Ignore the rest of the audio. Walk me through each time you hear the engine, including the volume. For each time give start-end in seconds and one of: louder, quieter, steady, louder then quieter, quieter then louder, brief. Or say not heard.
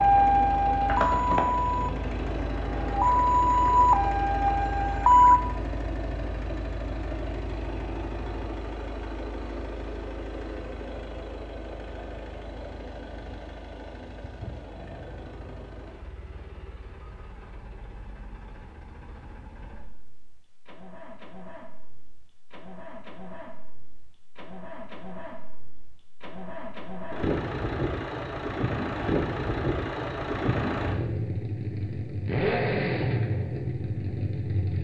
0.0-34.7 quieter then louder.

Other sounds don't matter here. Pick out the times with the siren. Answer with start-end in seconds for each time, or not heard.
0.0-5.4.